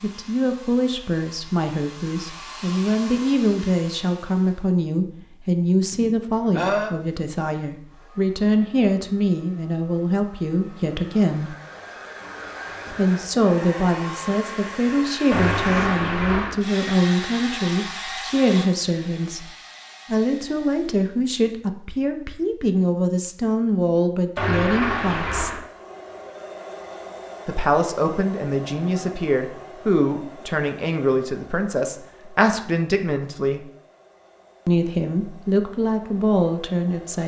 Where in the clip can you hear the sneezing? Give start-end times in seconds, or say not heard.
5.9-7.0.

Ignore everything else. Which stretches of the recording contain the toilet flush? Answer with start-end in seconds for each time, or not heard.
15.3-16.6, 24.4-25.6.